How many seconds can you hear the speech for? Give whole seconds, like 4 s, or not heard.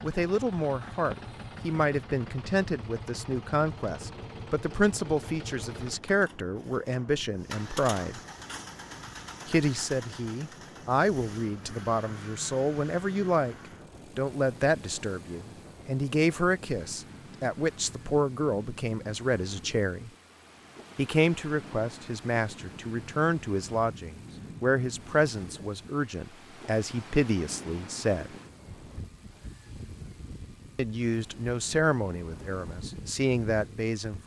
29 s.